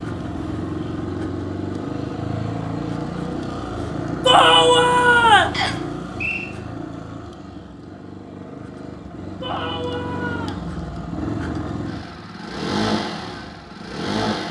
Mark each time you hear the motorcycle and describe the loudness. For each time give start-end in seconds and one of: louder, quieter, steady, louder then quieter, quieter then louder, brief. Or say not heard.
0.0-14.4 quieter then louder.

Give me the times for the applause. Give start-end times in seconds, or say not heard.
not heard.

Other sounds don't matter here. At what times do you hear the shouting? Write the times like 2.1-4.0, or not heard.
4.2-5.5, 9.4-10.6.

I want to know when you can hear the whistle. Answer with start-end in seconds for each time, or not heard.
5.5-6.5.